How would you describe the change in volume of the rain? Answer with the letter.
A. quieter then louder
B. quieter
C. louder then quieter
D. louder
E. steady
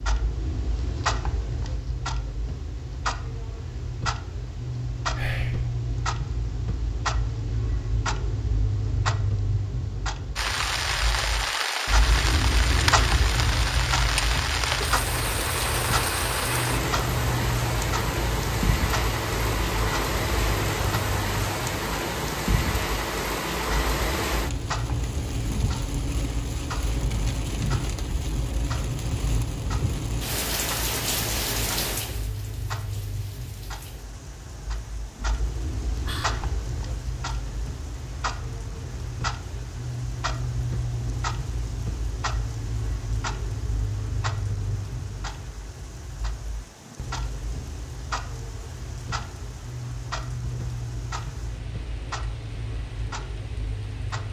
B.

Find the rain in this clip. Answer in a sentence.
The rain can be heard from 10.3 to 54.2 s.